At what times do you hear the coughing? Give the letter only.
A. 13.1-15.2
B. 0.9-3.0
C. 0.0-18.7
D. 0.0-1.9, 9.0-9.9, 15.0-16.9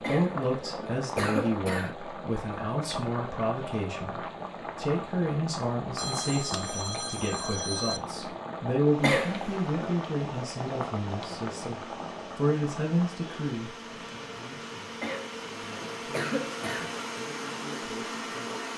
D.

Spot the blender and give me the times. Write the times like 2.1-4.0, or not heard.
8.8-18.7.